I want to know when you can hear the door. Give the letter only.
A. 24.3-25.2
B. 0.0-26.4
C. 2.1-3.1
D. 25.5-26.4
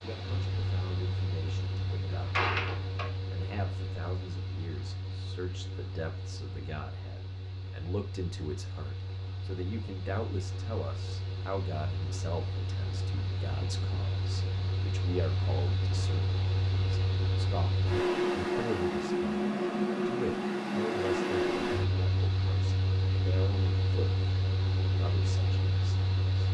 C.